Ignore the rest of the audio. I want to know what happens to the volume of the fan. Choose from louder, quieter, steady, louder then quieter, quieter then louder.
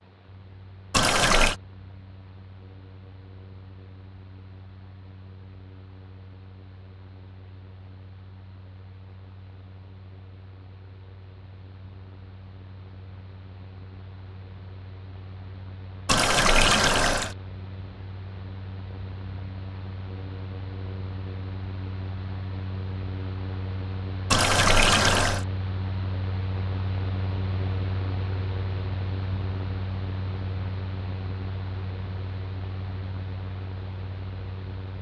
louder.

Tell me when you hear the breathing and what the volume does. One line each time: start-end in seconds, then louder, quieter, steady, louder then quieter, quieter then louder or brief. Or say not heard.
not heard.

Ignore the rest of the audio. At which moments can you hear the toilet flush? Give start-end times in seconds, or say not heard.
0.9-1.6, 16.1-17.4, 24.3-25.4.